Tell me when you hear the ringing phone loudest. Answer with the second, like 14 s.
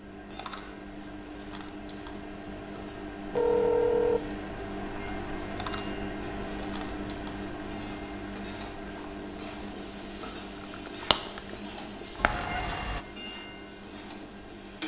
4 s.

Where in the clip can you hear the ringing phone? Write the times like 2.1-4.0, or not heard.
3.4-4.2, 12.2-13.1.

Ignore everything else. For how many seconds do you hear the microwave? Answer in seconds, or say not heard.
15 s.